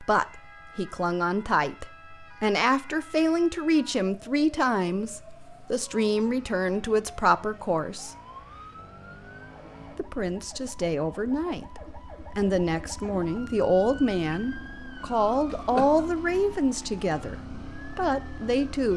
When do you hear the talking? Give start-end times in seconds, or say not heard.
0.0-8.2, 9.9-18.9.